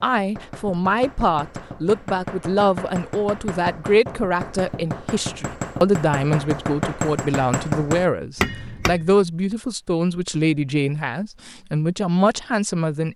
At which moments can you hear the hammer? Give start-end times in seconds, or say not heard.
0.0-9.1.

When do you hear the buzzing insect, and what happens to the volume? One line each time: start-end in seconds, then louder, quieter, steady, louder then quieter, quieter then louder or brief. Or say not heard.
not heard.